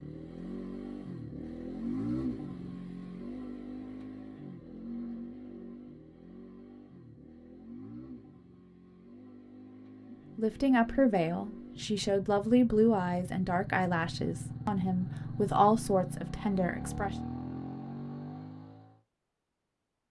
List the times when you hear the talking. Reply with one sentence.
The talking can be heard from 10.3 to 17.1 s.